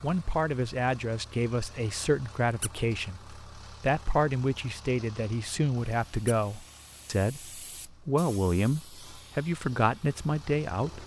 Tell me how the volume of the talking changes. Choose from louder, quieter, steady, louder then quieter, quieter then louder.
steady.